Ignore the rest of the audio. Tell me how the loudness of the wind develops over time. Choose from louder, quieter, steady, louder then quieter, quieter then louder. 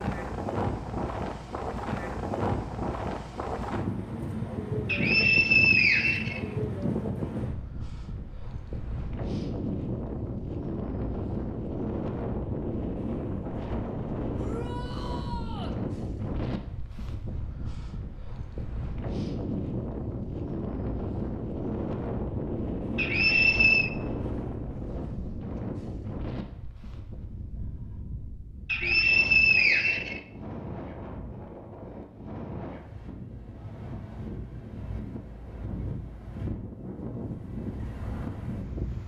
quieter.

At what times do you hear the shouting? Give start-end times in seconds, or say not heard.
14.3-15.8.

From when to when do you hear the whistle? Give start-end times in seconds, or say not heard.
4.8-6.4, 22.9-23.9, 28.6-30.2.